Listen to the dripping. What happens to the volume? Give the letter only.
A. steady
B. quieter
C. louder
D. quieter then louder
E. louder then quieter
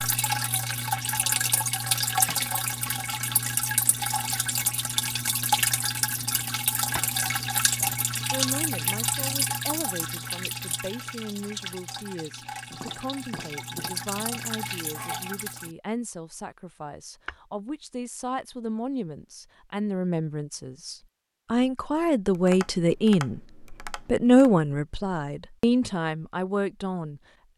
B.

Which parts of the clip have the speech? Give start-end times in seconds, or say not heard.
7.8-27.5.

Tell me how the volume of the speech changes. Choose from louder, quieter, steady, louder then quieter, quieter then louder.
louder.